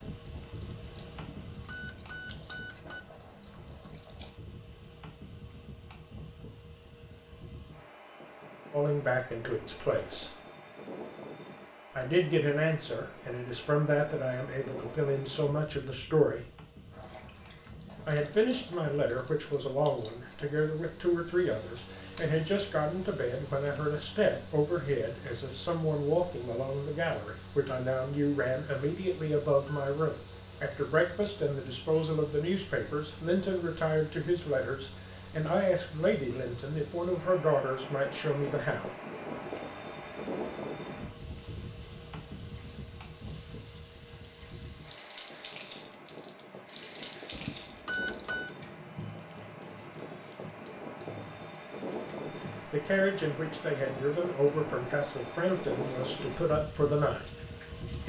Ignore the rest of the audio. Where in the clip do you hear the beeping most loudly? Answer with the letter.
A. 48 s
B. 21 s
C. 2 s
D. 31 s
A.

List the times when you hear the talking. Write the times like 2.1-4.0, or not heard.
8.7-10.3, 11.9-16.4, 18.1-38.9, 52.7-57.2.